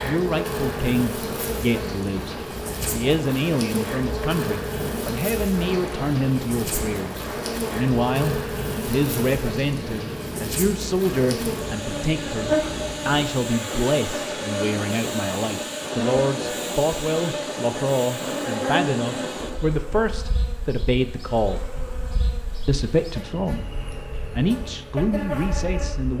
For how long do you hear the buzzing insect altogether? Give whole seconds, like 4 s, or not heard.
26 s.